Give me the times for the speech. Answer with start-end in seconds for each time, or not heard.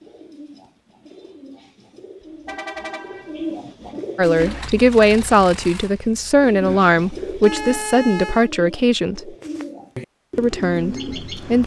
4.2-9.3, 10.3-11.6.